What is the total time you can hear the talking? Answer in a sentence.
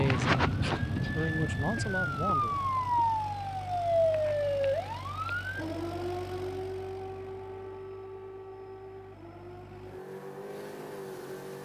You can hear the talking for 3 seconds altogether.